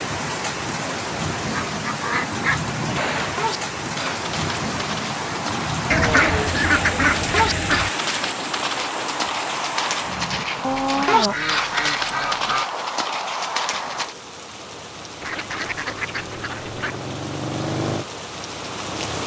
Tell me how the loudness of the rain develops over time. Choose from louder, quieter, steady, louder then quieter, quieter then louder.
quieter then louder.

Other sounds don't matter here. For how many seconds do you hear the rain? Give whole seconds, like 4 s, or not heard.
19 s.